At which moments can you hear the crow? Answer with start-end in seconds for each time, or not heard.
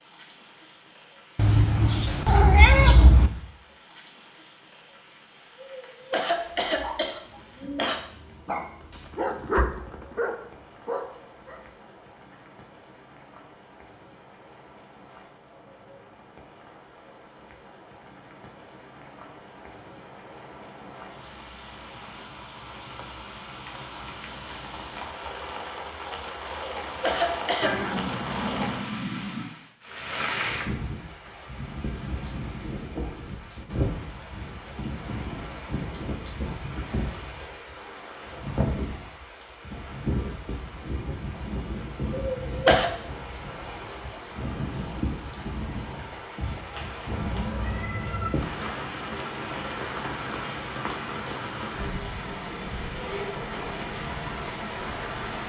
not heard.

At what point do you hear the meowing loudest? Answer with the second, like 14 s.
3 s.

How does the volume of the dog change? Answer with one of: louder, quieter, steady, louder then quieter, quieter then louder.
louder then quieter.